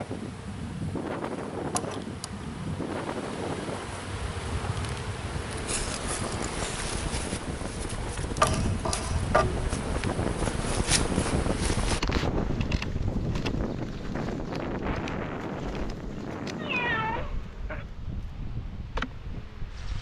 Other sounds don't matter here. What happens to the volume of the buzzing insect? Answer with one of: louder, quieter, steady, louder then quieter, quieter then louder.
louder then quieter.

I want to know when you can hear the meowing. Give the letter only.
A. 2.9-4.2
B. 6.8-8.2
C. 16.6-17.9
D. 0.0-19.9
C.